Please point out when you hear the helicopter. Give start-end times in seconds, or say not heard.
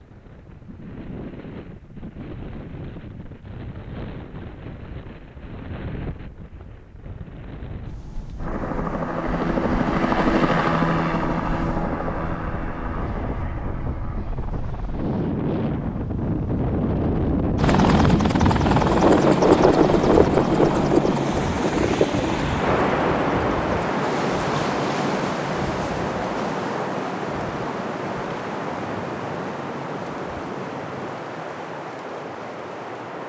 8.3-16.1, 17.6-31.2.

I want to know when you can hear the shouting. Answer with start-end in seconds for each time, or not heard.
not heard.